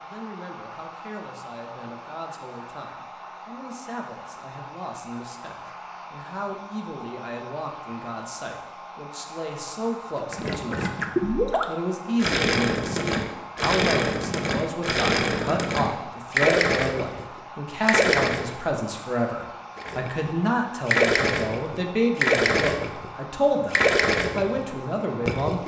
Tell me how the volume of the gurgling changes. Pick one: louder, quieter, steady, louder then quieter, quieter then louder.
steady.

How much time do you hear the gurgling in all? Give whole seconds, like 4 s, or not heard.
14 s.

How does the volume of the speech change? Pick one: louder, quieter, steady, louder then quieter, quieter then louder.
louder.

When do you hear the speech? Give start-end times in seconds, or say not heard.
0.0-25.6.